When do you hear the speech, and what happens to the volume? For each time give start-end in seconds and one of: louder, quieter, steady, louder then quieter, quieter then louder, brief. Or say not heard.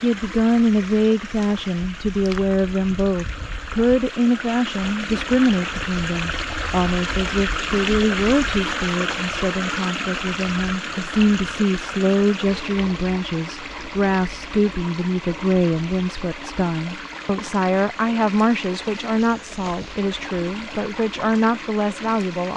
0.0-22.5 steady.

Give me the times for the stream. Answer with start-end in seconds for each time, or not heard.
0.0-22.5.